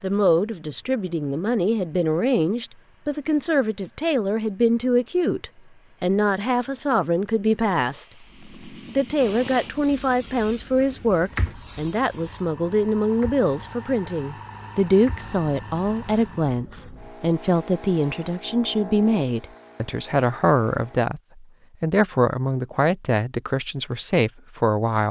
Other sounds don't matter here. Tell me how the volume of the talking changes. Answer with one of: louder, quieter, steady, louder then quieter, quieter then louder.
steady.